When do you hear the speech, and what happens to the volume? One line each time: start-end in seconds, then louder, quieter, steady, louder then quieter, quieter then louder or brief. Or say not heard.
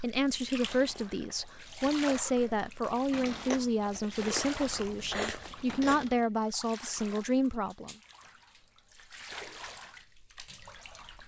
0.0-8.0 steady.